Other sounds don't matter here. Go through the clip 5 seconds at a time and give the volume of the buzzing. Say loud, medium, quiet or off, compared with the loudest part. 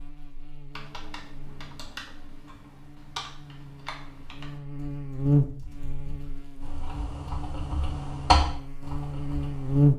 quiet, loud.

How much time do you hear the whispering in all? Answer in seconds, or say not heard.
not heard.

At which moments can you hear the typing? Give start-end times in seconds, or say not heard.
0.7-9.8.